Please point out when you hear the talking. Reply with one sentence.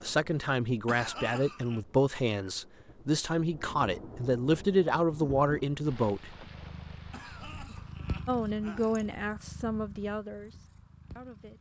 You can hear the talking from 0.0 to 6.3 s and from 8.2 to 11.5 s.